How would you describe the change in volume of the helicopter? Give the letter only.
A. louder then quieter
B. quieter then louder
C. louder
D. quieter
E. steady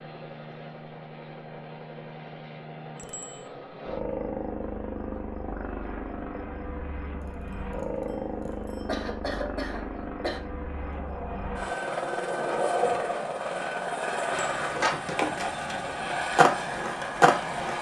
C.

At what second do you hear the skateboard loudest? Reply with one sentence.
The volume of the skateboard peaks at 17 seconds.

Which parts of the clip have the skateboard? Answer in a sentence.
You can hear the skateboard from 10.8 to 17.7 s.